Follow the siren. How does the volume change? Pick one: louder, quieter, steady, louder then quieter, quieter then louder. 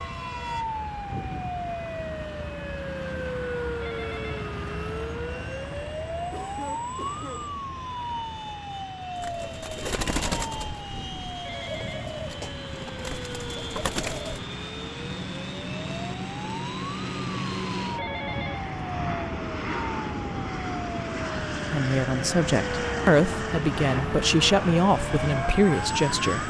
quieter then louder.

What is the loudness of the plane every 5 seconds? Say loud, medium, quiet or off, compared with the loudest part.
quiet, quiet, medium, loud, loud, loud.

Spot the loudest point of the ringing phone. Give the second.
18 s.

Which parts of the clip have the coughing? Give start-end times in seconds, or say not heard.
6.3-7.5.